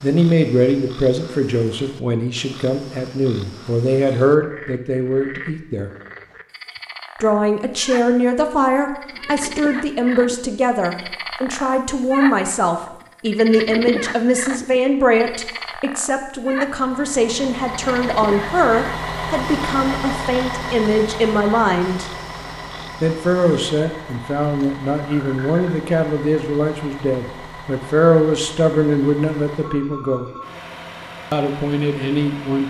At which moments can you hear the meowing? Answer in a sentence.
The meowing can't be heard in this clip.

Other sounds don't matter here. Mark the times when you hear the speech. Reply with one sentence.
You can hear the speech from 0.0 to 5.9 s, from 7.2 to 22.1 s, from 23.0 to 30.2 s and from 31.3 to 32.6 s.